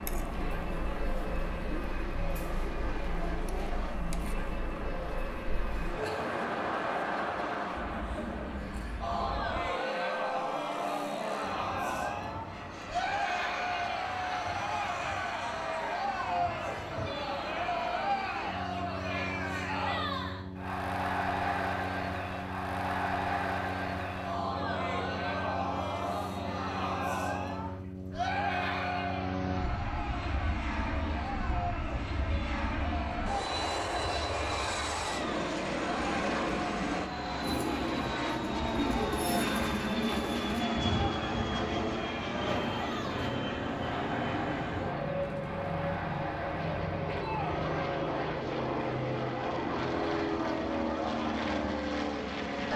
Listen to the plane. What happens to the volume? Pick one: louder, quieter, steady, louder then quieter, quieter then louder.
louder.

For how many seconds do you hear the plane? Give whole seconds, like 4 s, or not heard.
53 s.